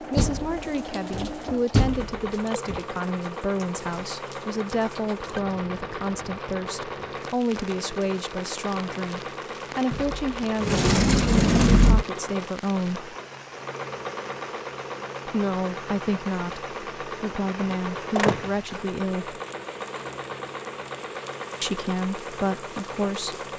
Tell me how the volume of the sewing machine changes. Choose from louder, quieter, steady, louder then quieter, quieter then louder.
steady.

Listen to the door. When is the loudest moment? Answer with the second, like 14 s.
12 s.